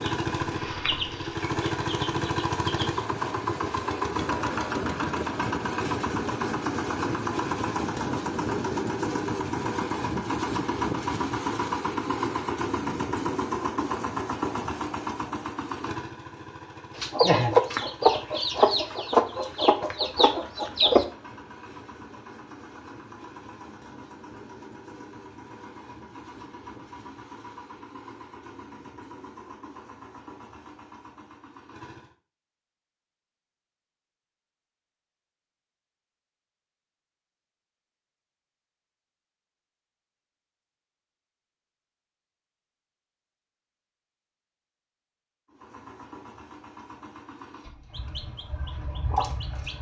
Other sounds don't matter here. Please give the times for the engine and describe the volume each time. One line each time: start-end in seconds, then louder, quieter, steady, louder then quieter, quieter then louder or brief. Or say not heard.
0.0-32.1 quieter
45.5-49.7 quieter.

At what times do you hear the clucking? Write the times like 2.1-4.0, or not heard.
0.0-3.0, 16.9-21.1, 48.0-49.7.